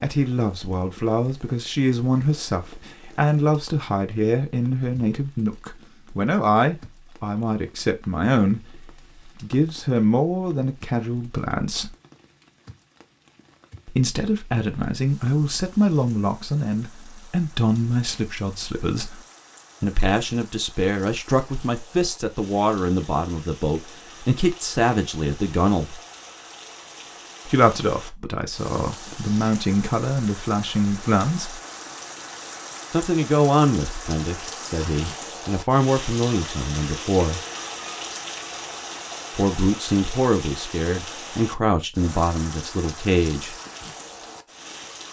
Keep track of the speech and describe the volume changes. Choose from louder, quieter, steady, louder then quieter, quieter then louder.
steady.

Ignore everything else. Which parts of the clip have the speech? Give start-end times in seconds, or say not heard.
0.0-11.9, 13.8-19.2, 19.8-26.0, 27.4-31.6, 32.9-37.4, 39.4-43.5.